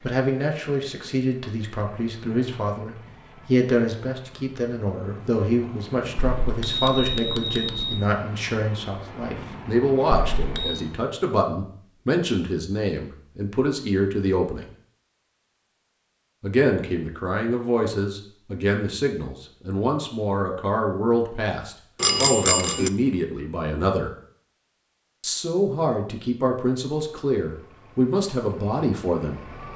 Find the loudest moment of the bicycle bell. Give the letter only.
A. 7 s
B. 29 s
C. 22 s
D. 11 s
C.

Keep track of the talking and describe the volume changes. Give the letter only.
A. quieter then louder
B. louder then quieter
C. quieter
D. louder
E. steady
E.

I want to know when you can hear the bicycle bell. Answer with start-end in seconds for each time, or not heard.
6.2-8.0, 10.3-10.8, 22.0-22.9.